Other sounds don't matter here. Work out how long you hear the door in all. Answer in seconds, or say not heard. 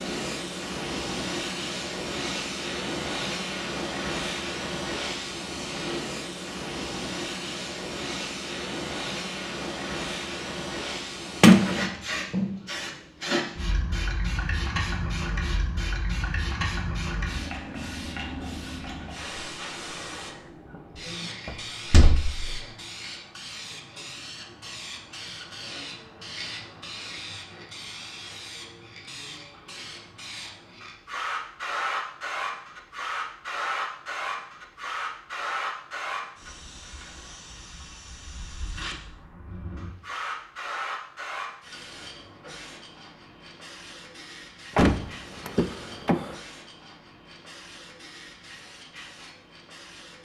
4 s.